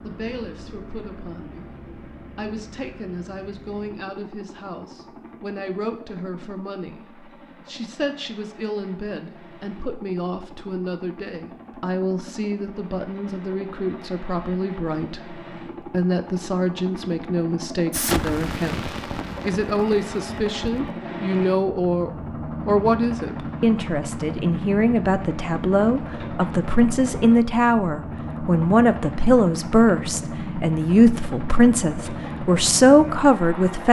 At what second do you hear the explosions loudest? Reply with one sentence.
The volume of the explosions peaks at 18 seconds.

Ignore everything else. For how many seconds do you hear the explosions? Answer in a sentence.
The explosions can be heard for 3 seconds in total.